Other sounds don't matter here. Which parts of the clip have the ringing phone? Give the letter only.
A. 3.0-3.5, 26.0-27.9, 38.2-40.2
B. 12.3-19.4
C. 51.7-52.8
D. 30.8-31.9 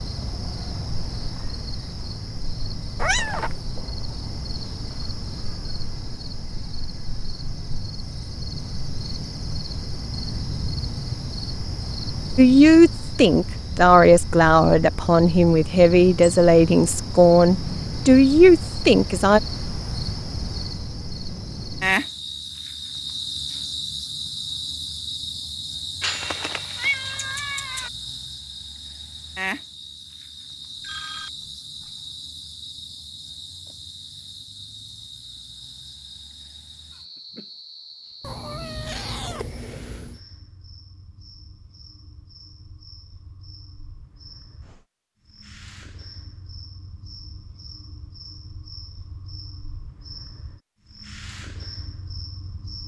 D.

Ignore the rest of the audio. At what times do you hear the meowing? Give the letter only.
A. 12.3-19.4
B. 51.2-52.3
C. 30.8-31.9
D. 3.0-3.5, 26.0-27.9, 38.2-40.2
D.